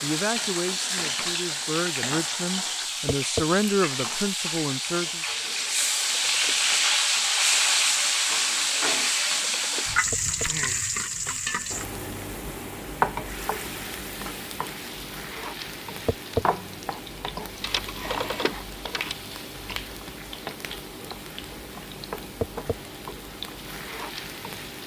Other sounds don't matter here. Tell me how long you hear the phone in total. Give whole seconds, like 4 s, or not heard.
4 s.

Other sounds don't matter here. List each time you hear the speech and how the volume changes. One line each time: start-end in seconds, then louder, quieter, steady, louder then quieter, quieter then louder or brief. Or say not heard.
0.0-5.2 louder then quieter.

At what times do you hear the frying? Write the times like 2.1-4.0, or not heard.
0.0-24.8.